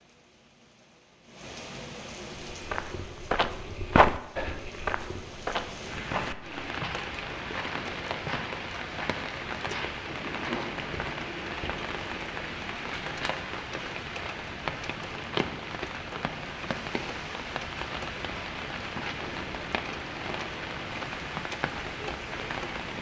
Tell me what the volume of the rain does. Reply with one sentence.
The loudness of the rain goes up.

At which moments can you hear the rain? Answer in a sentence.
You can hear the rain from 0.0 to 22.9 s.